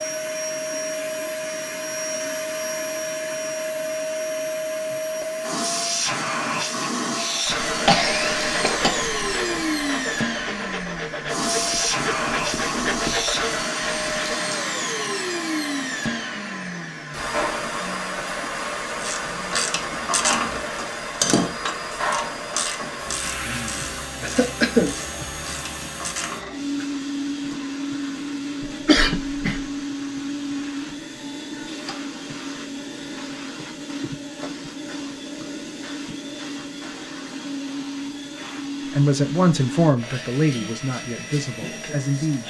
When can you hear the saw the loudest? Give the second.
13 s.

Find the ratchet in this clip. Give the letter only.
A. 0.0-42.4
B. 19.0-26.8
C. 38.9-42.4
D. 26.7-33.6
B.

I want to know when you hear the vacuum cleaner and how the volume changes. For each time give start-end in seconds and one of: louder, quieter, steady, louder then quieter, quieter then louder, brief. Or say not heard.
0.0-42.4 quieter.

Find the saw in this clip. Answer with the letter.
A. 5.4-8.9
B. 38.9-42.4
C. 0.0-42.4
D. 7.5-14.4
D.